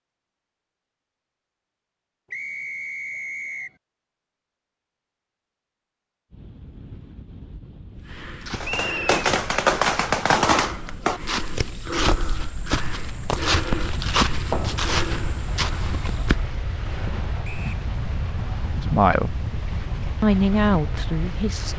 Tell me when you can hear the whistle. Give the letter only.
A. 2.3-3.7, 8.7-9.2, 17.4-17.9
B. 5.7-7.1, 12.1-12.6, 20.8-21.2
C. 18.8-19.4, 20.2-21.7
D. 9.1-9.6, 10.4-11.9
A.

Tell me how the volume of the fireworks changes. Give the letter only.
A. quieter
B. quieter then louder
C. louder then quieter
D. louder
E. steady
A.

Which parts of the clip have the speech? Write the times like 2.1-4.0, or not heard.
18.8-19.4, 20.2-21.7.